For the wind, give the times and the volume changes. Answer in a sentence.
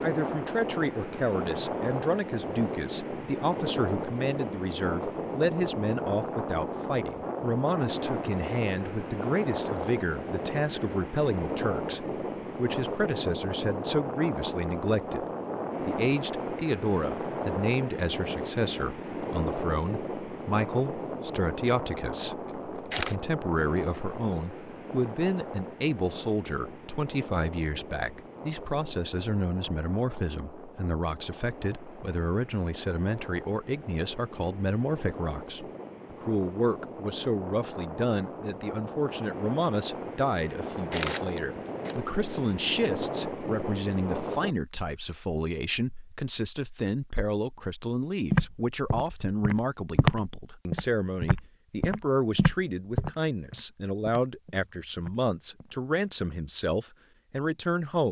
The wind can be heard from 0.0 to 44.5 s, getting quieter then louder.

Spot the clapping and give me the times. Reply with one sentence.
You can't hear the clapping here.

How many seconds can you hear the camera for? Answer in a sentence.
You can hear the camera for 2 seconds altogether.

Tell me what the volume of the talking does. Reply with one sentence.
The volume of the talking stays about the same.